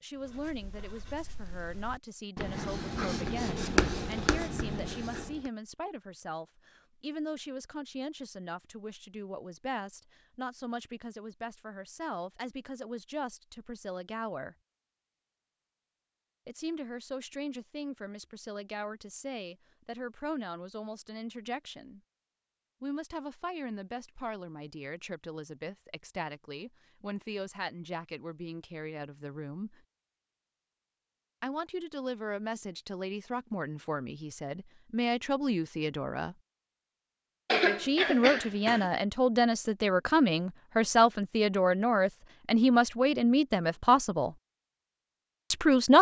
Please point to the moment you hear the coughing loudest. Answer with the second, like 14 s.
38 s.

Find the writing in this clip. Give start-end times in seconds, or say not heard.
0.1-5.5.